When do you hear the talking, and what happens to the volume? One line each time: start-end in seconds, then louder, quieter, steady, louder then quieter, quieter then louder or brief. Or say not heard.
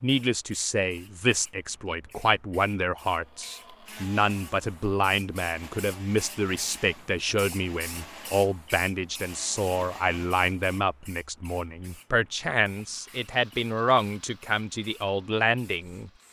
0.0-16.1 steady.